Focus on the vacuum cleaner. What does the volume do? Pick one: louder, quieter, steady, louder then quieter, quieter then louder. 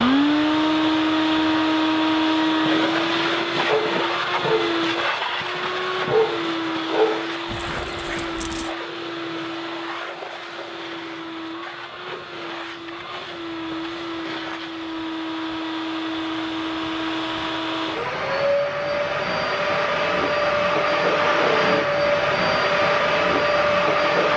quieter then louder.